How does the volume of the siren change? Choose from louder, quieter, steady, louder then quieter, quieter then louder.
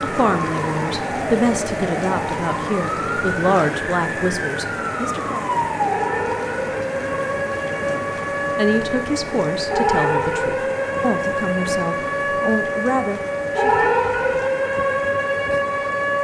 louder.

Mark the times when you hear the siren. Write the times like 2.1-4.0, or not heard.
0.0-16.1.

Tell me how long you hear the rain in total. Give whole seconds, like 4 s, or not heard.
16 s.